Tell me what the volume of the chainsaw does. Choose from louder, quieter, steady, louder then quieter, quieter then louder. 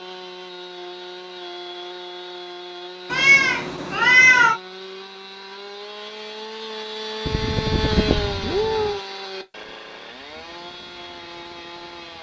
louder then quieter.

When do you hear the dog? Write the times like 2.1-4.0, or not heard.
not heard.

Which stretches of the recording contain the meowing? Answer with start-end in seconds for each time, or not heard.
3.1-4.6, 7.2-9.0.